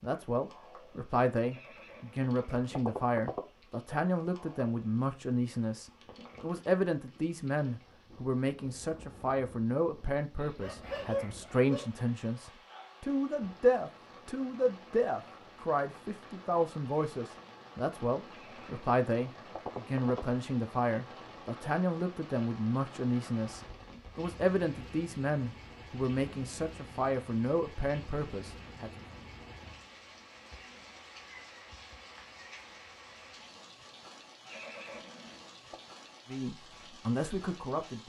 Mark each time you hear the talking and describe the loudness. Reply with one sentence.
The talking can be heard from 0.0 to 29.0 s, at a steady volume; and briefly from 36.3 to 38.0 s.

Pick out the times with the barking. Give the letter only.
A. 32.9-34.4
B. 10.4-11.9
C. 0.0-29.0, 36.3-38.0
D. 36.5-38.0
B.